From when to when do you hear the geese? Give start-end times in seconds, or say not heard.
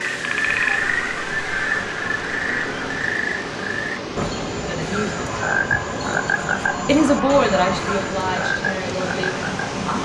0.5-3.1, 5.3-8.2.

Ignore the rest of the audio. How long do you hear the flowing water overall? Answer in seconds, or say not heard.
10 s.